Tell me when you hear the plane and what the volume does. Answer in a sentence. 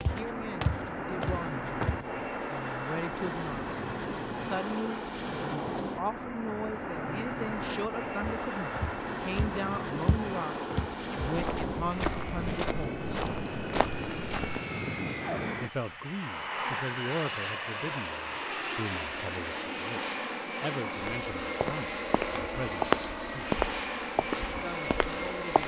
The plane can be heard from 0.0 to 25.6 s, at a steady volume.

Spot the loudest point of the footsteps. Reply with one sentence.
The loudest moment of the footsteps is at 23 seconds.